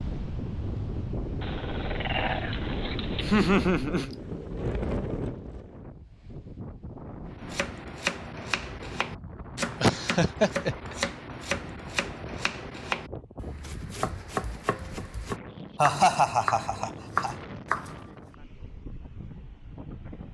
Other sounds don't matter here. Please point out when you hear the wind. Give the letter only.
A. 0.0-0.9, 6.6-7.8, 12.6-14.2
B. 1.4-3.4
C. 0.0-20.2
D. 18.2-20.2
C.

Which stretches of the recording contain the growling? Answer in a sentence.
The growling can be heard from 1.4 to 3.4 s.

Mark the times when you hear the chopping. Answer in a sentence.
You can hear the chopping from 7.3 to 18.1 s.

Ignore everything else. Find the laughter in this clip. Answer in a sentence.
The laughter can be heard from 3.2 to 4.2 s, from 9.8 to 10.9 s and from 15.8 to 17.4 s.